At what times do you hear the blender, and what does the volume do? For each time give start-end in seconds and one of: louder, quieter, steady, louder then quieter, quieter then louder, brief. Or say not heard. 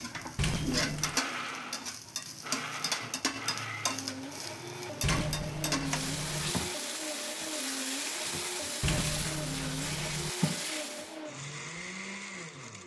0.0-12.8 steady.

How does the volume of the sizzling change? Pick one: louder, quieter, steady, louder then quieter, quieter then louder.
steady.